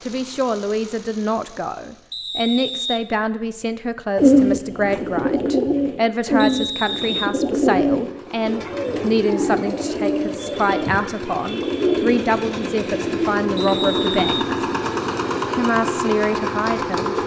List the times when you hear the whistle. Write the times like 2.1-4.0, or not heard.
2.1-3.5, 6.4-7.3, 13.6-14.5.